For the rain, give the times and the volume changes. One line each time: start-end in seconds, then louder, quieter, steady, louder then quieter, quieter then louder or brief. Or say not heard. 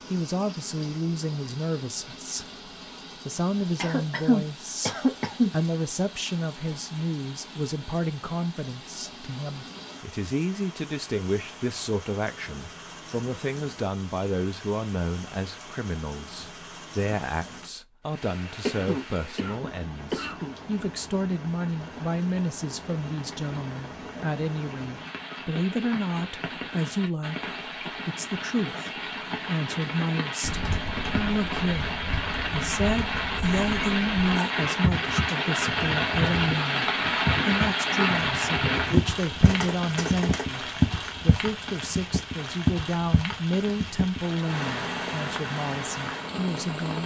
0.0-47.0 louder.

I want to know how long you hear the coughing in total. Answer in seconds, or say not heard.
5 s.